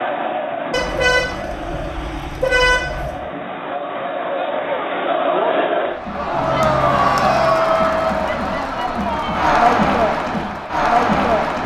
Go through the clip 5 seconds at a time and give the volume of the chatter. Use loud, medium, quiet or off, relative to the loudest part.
medium, loud, loud.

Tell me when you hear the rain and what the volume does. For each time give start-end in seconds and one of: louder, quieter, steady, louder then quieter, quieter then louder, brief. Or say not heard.
not heard.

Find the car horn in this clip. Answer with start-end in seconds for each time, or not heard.
0.7-3.2, 6.3-7.7.